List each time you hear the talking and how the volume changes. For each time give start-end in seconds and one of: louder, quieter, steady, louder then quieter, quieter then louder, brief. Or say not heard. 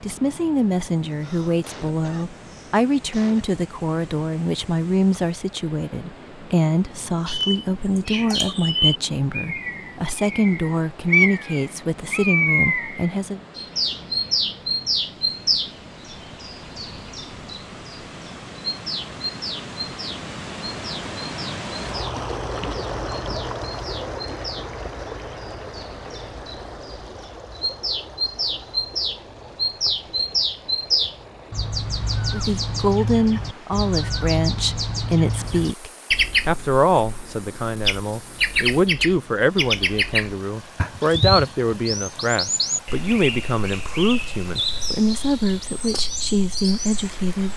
0.0-13.4 steady
32.3-47.5 steady.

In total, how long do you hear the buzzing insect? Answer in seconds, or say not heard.
not heard.